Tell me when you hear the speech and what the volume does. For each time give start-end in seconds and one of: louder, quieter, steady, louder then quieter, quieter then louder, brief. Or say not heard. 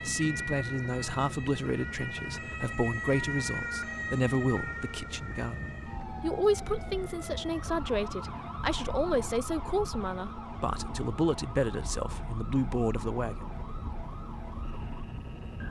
0.0-13.3 steady.